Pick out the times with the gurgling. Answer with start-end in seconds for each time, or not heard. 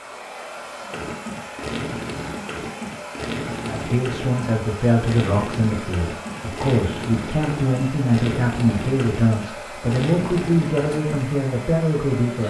0.8-11.2.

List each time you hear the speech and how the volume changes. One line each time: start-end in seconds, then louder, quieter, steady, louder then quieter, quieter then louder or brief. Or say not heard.
3.6-12.4 steady.